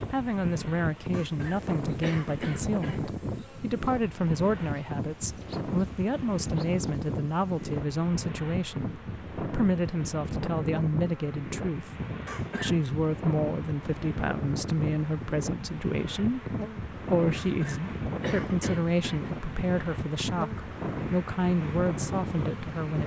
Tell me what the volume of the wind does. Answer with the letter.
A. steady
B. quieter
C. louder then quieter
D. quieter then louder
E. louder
A.